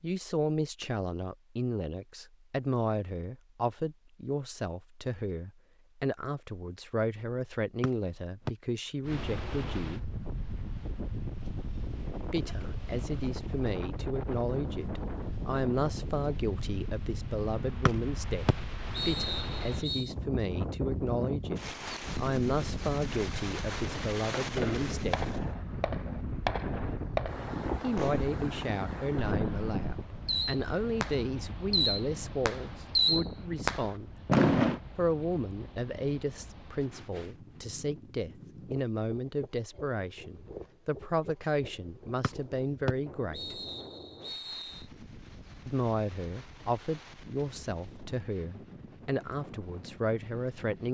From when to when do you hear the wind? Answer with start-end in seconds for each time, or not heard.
9.0-50.8.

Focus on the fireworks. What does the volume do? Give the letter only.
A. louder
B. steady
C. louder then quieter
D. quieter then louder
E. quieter
A.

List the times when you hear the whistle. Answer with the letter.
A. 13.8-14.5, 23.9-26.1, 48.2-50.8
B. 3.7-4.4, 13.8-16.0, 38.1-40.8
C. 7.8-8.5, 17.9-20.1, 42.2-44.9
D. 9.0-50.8
C.